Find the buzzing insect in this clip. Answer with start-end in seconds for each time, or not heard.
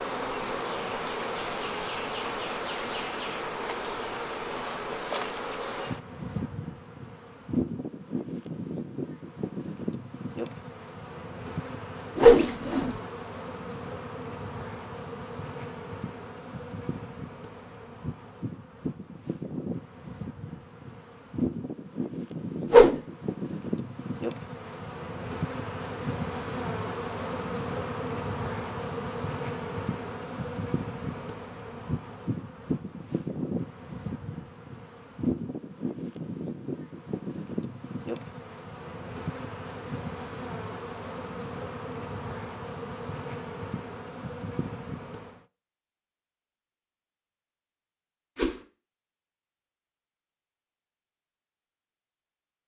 0.0-45.5.